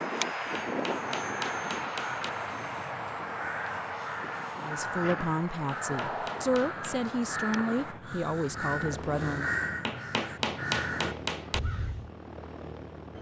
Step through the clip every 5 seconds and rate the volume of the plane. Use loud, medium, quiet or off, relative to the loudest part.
loud, medium, medium.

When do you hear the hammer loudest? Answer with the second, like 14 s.
11 s.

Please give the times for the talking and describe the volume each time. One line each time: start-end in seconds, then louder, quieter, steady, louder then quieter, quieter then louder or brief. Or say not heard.
4.6-9.6 steady.